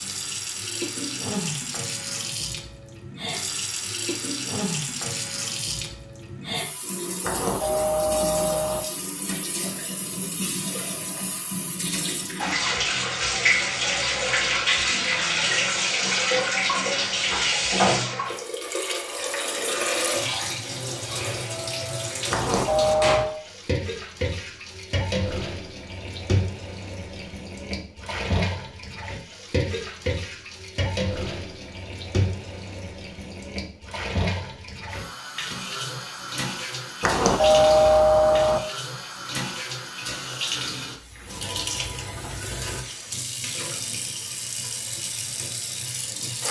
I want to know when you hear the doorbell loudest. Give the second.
38 s.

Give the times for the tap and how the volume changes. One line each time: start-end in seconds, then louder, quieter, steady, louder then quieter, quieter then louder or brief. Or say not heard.
0.0-46.4 louder then quieter.